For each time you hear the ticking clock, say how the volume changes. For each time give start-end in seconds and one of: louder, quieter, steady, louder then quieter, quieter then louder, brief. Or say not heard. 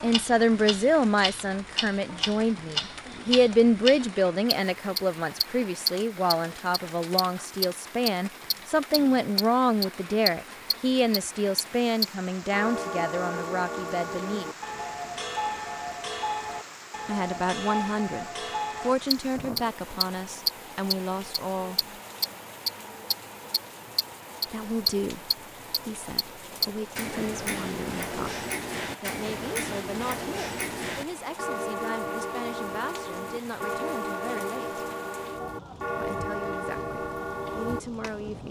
0.0-38.4 steady.